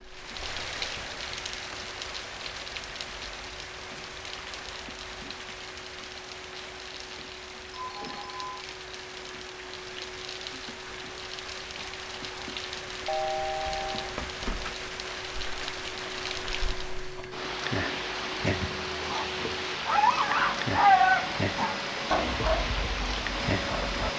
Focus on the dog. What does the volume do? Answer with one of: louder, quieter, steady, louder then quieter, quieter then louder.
louder then quieter.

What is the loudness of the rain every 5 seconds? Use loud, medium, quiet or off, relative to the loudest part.
medium, medium, medium, loud, loud.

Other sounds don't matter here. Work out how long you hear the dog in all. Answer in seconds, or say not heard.
6 s.